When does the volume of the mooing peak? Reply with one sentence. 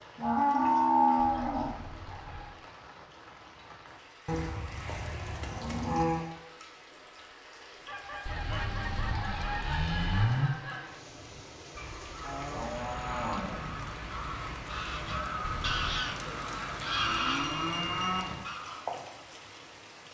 The volume of the mooing peaks at 1 second.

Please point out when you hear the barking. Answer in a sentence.
The barking can't be heard in this clip.